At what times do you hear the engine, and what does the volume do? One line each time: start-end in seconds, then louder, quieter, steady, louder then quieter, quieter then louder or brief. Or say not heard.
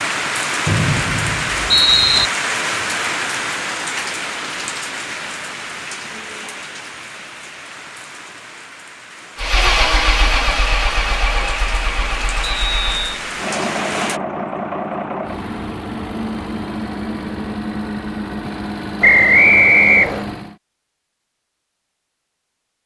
9.3-20.6 quieter.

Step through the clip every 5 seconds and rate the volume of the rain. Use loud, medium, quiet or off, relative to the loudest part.
loud, medium, medium, off, off.